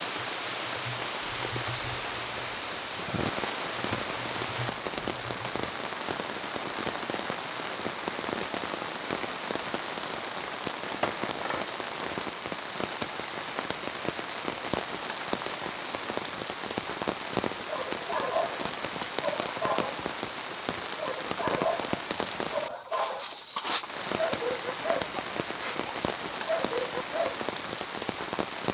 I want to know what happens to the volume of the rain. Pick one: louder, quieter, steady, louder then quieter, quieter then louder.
steady.